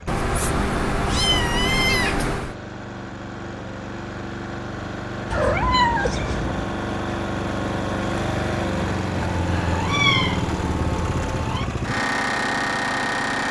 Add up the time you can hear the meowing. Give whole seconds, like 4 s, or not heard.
6 s.